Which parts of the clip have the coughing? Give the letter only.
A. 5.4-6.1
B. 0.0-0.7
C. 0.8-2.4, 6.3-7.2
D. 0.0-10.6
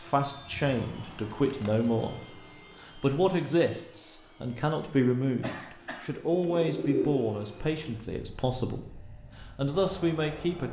A.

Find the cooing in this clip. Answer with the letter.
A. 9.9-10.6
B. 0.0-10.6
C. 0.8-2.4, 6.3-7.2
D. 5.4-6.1
C.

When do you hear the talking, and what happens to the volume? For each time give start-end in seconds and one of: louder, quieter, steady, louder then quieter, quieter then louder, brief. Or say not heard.
0.0-10.6 steady.